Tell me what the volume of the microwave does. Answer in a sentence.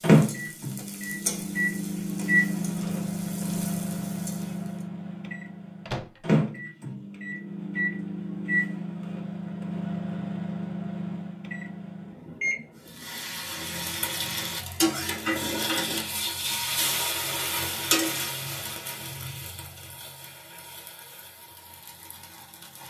The loudness of the microwave goes down.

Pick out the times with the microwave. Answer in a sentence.
The microwave can be heard from 0.0 to 13.7 s.